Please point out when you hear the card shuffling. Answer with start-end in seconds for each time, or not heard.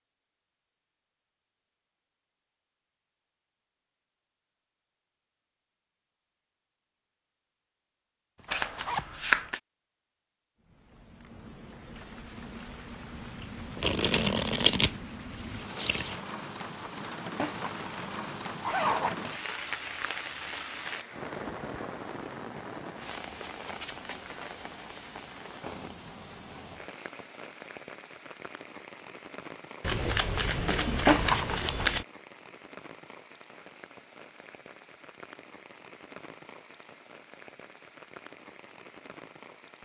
8.4-9.6, 13.8-16.2, 29.8-32.0.